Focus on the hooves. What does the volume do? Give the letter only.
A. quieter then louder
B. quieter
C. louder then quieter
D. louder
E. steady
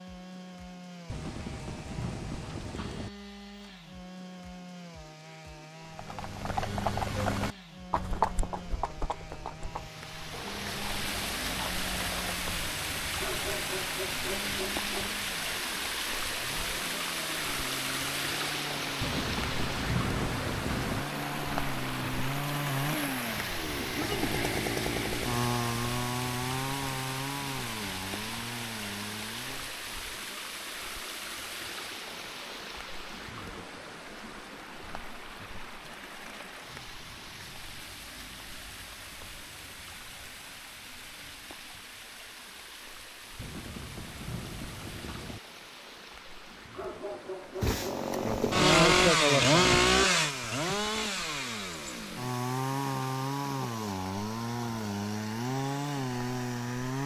B.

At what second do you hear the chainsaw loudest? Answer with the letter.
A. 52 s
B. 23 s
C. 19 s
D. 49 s
D.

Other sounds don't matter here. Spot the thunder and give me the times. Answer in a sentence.
You can hear the thunder from 1.1 to 3.1 s, from 19.0 to 21.0 s and from 43.4 to 45.4 s.